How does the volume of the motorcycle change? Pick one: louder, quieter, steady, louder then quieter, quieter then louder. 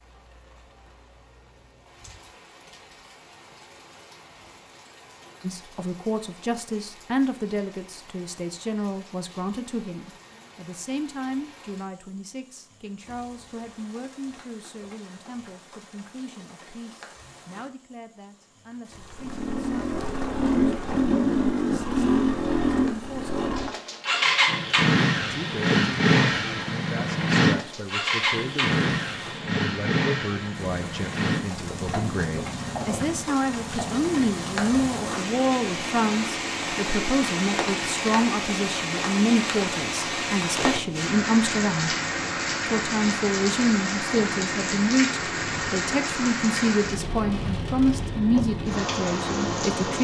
quieter.